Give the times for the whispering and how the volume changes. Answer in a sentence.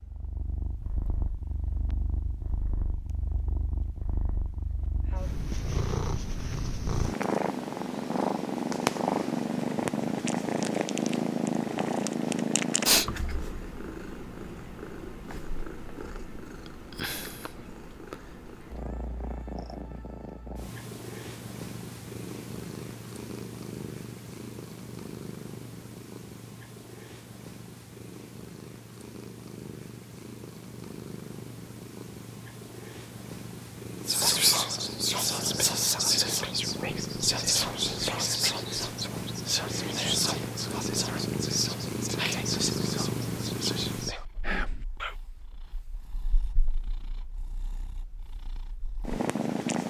You can hear the whispering from 34.0 to 45.1 s, getting quieter.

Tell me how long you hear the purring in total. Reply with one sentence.
You can hear the purring for 50 seconds altogether.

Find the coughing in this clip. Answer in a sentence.
You can't hear the coughing here.